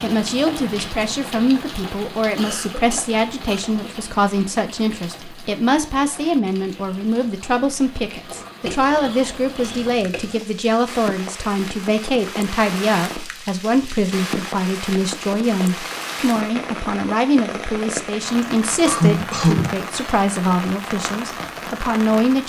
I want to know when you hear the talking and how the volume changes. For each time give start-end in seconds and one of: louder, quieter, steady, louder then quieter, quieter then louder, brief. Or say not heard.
0.0-22.4 steady.